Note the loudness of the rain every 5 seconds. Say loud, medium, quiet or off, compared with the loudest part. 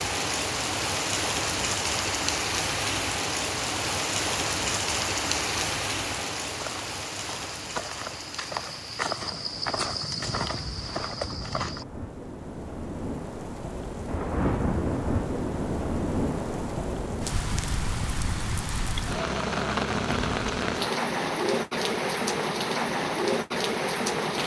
loud, medium, medium, loud, loud.